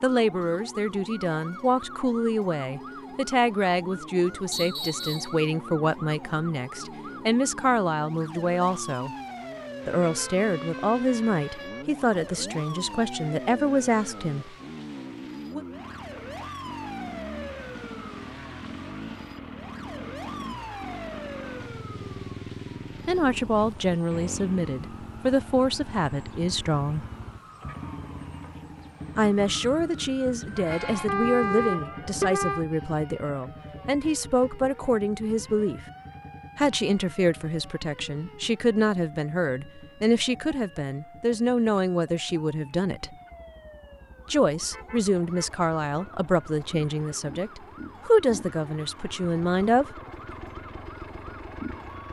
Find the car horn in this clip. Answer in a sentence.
You can hear the car horn from 9.9 to 11.8 s, from 31.1 to 32.6 s and from 44.6 to 46.1 s.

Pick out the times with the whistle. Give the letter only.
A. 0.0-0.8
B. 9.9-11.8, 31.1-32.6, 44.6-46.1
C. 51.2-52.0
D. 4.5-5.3
D.